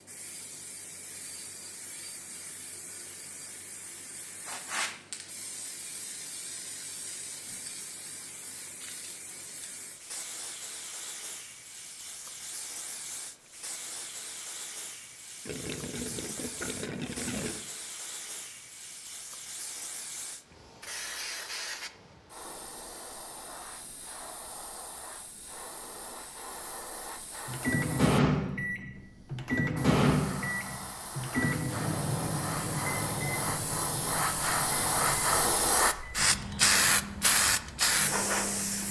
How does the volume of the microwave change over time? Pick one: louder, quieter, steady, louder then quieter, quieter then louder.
quieter.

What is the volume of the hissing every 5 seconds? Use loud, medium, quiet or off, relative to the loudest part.
quiet, quiet, quiet, quiet, quiet, quiet, medium, loud.